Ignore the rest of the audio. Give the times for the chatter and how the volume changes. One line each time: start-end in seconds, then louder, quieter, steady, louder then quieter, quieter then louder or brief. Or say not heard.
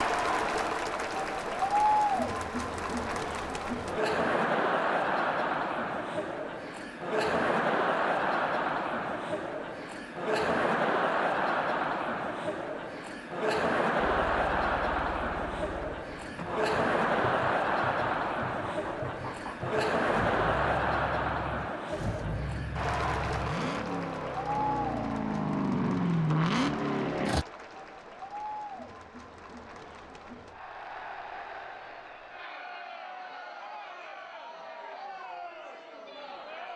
0.0-36.7 quieter.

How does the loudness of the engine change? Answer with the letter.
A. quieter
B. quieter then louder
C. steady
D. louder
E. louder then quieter
D.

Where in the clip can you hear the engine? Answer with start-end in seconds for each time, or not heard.
14.2-27.4.